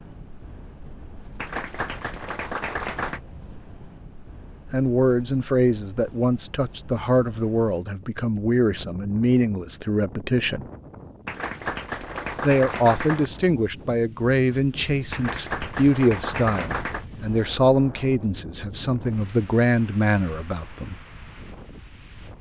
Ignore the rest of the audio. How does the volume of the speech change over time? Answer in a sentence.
The loudness of the speech stays about the same.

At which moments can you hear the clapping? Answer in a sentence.
The clapping can be heard from 1.4 to 3.2 s, from 11.2 to 13.3 s and from 15.1 to 17.1 s.